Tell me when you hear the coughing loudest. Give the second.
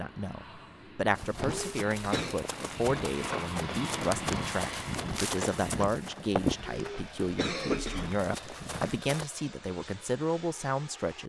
8 s.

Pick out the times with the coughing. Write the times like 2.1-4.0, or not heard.
1.4-2.4, 6.6-8.1.